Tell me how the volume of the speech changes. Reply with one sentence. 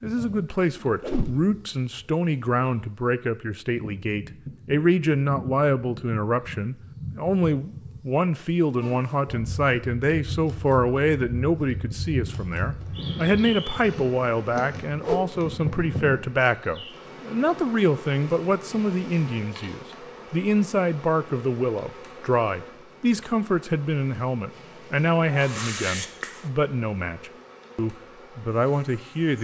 The loudness of the speech stays about the same.